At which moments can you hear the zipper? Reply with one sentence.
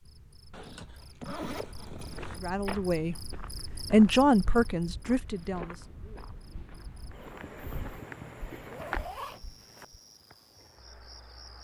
You can hear the zipper from 0.5 to 2.4 s and from 8.7 to 9.8 s.